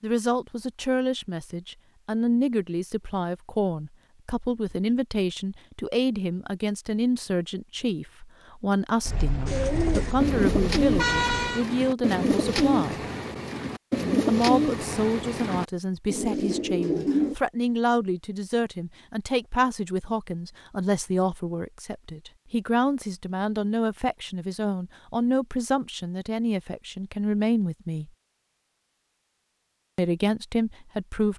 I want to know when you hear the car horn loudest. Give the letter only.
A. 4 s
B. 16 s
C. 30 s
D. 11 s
D.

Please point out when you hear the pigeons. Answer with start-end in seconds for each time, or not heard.
9.4-17.4.